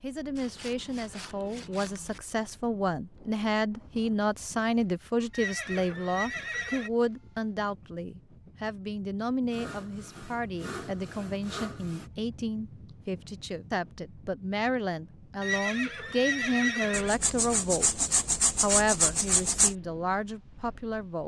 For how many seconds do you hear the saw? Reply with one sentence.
You can hear the saw for 7 seconds altogether.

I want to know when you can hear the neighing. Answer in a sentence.
The neighing can be heard from 5.3 to 6.9 s and from 15.4 to 17.1 s.